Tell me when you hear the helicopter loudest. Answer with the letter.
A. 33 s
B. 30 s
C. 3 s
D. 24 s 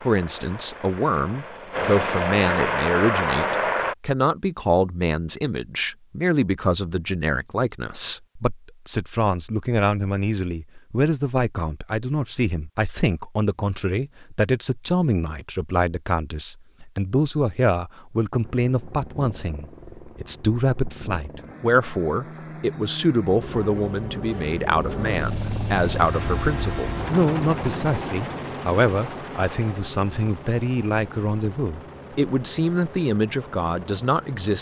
C.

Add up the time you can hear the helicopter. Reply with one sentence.
The helicopter can be heard for 20 seconds in total.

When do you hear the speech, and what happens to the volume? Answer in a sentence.
You can hear the speech from 0.0 to 34.5 s, at a steady volume.